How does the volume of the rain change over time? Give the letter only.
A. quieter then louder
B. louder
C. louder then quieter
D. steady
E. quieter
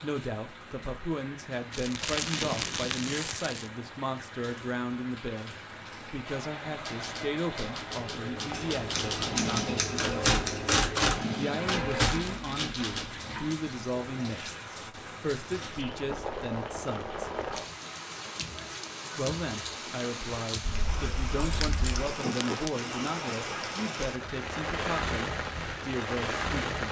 B.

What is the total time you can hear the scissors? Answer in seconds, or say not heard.
4 s.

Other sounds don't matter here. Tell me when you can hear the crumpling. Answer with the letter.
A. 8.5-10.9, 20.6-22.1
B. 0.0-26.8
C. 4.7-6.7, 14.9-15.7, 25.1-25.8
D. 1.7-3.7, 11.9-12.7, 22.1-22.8
D.